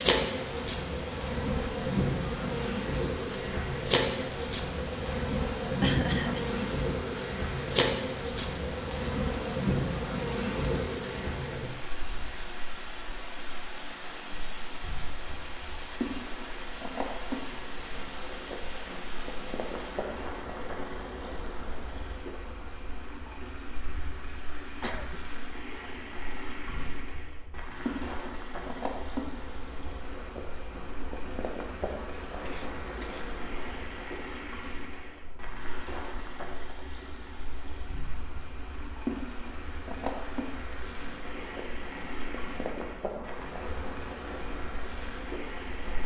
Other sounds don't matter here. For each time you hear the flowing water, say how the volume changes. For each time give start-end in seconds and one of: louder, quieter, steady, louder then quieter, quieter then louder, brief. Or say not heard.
0.2-46.0 steady.